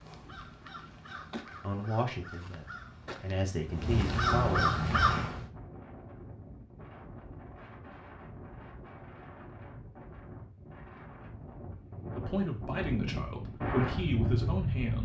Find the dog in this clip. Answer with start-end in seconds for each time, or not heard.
not heard.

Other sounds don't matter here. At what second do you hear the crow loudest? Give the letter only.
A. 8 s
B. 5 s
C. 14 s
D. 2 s
B.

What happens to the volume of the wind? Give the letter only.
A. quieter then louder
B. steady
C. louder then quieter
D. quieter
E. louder
E.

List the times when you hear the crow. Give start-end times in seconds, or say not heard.
0.0-5.5.